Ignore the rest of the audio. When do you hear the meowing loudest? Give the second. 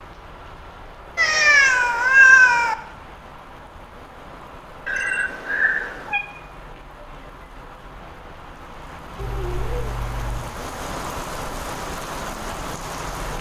2 s.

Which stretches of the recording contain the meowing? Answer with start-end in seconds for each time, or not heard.
1.1-2.8, 4.8-6.2, 9.2-10.4.